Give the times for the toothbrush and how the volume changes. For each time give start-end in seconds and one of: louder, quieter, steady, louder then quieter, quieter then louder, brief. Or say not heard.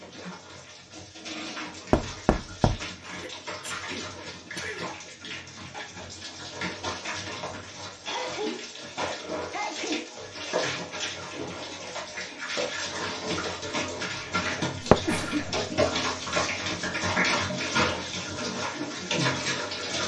not heard.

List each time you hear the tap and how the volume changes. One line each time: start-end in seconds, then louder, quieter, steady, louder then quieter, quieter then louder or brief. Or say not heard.
0.0-20.0 louder.